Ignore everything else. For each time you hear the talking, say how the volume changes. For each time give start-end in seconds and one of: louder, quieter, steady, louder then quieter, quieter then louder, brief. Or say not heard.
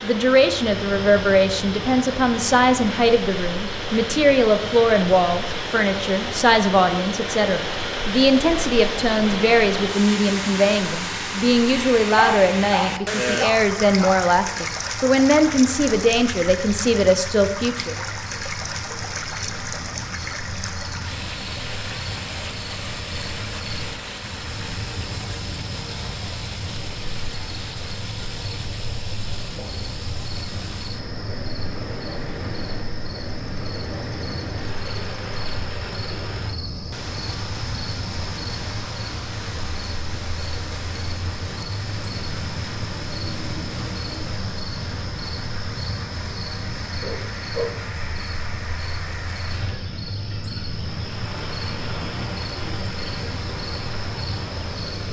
0.0-18.1 steady.